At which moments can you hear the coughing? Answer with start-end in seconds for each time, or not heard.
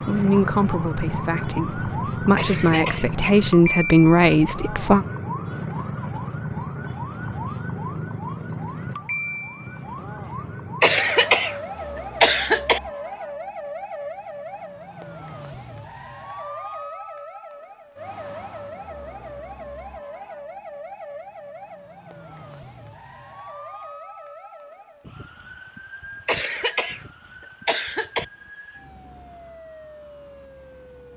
2.4-3.1, 10.8-12.8, 26.2-28.2.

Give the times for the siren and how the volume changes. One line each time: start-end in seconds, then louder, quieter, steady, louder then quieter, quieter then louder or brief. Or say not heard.
0.0-31.1 quieter.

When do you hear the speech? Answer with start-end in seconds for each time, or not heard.
0.1-5.0.